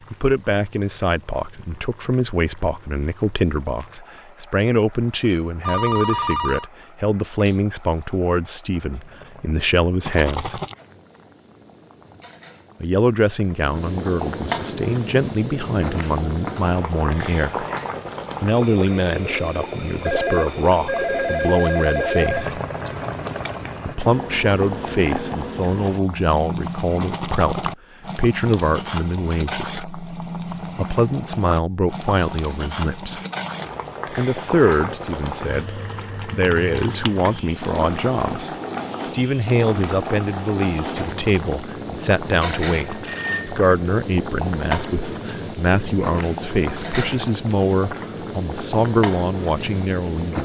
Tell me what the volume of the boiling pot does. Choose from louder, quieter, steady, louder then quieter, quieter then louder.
louder.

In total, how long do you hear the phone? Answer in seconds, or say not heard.
4 s.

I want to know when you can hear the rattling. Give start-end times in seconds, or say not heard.
10.0-10.8, 27.0-27.8, 41.1-41.7.